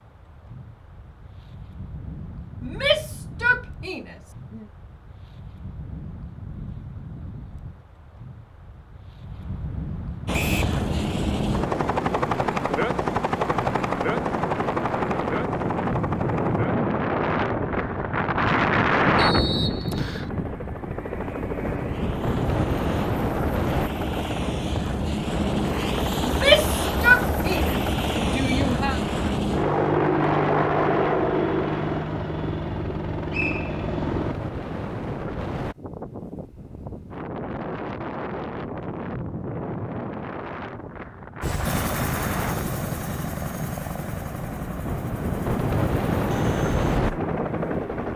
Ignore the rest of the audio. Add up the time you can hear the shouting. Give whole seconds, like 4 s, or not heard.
5 s.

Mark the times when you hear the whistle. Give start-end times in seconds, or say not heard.
10.3-10.8, 19.1-20.3, 33.3-33.8.